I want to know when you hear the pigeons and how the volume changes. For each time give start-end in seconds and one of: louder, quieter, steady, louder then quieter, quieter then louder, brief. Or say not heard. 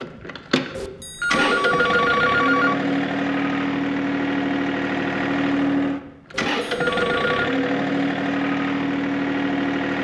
not heard.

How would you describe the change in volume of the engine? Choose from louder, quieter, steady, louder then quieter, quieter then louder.
steady.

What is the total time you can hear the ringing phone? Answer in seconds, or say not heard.
3 s.